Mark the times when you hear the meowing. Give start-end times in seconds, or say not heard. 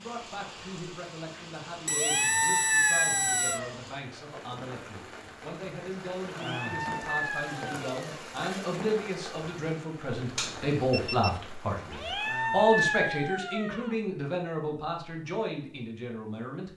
1.9-3.8, 6.2-8.2, 11.8-13.9.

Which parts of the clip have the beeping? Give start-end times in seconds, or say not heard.
1.9-3.6, 10.3-11.4.